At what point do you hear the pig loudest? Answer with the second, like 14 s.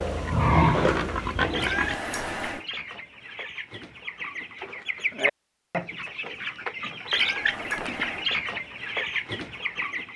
1 s.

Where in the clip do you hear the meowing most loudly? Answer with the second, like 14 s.
2 s.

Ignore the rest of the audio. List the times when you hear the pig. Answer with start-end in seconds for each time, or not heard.
0.0-2.6.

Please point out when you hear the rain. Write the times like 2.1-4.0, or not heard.
not heard.